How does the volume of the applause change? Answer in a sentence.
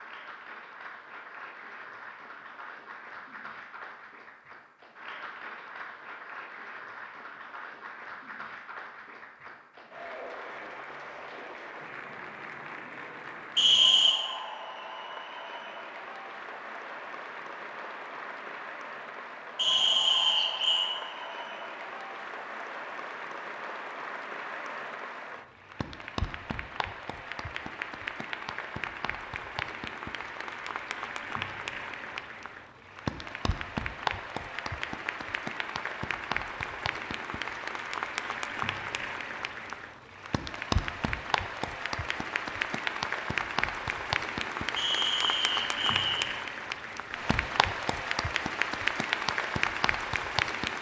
The volume of the applause goes up.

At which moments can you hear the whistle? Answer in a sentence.
You can hear the whistle from 13.6 to 14.2 s, from 19.6 to 20.9 s and from 44.8 to 46.3 s.